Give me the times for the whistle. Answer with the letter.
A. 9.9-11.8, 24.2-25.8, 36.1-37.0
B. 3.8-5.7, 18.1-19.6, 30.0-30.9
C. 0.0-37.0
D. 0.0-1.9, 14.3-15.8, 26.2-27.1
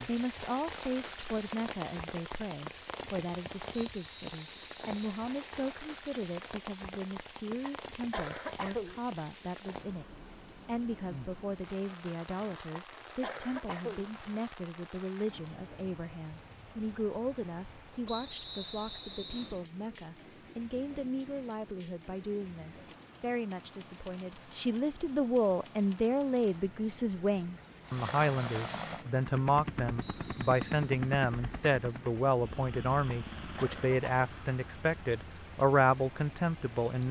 B.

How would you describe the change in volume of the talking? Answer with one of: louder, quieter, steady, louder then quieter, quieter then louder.
louder.